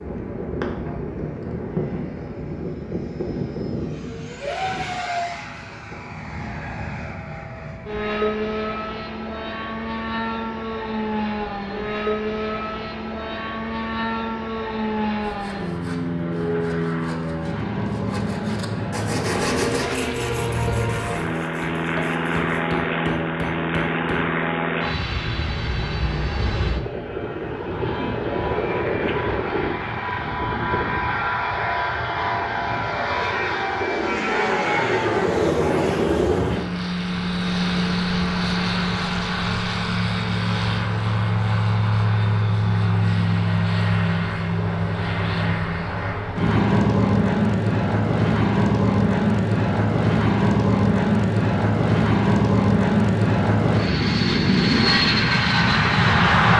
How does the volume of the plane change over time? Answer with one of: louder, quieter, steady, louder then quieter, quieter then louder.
louder.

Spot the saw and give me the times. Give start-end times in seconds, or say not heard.
15.2-22.6.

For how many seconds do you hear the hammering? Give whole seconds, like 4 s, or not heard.
3 s.